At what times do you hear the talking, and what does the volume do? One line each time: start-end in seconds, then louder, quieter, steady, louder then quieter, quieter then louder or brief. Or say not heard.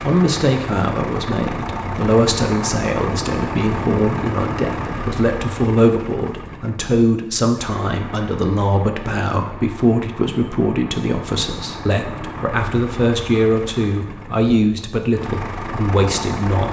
0.0-16.6 steady.